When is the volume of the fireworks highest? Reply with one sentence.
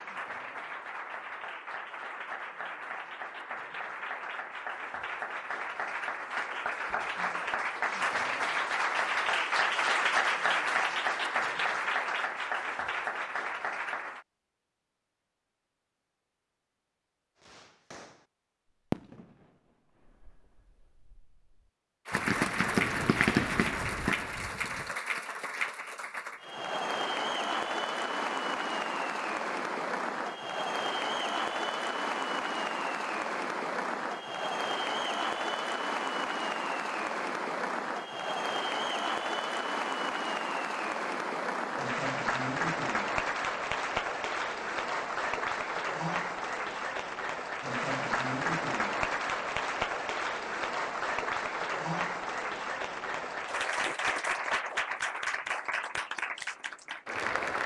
The loudest moment of the fireworks is at 23 seconds.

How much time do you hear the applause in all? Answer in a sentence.
The applause can be heard for 50 seconds in total.